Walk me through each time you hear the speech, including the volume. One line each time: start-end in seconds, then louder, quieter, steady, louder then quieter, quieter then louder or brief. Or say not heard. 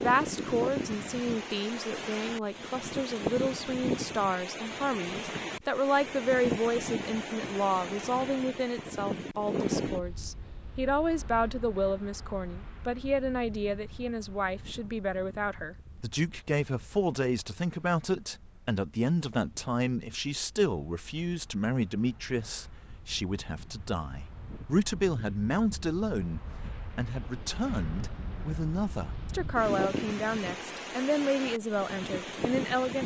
0.0-33.0 steady.